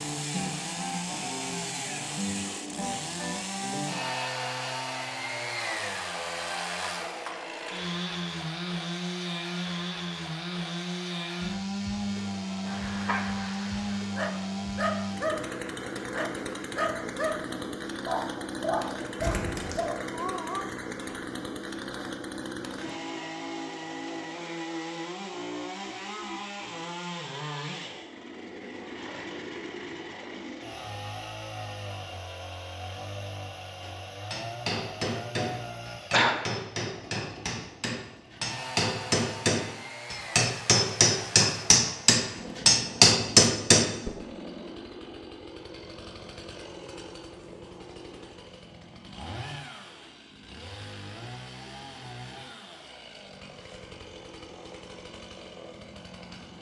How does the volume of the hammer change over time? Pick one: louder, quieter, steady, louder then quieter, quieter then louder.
louder.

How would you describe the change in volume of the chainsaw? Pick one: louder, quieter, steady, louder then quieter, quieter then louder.
quieter.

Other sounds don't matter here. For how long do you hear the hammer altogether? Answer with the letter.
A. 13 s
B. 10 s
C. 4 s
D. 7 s
B.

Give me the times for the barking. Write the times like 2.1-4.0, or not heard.
12.7-20.6.